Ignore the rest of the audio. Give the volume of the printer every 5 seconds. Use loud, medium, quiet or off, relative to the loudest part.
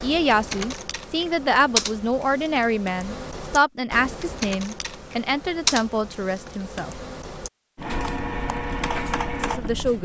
off, loud.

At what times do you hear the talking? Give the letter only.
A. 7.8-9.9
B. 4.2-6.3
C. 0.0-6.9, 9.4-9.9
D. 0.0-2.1
C.